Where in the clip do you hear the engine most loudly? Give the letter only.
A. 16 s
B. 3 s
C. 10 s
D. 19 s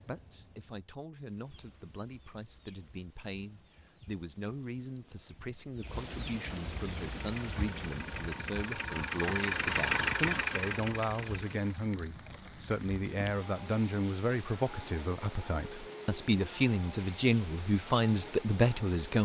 C.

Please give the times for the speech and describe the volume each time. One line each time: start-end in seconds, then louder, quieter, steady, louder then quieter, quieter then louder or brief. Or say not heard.
0.1-19.1 louder.